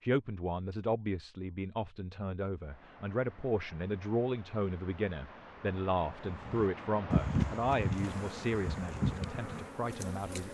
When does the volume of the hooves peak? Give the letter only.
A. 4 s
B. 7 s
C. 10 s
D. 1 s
B.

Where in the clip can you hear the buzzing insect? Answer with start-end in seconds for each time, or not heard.
7.9-10.4.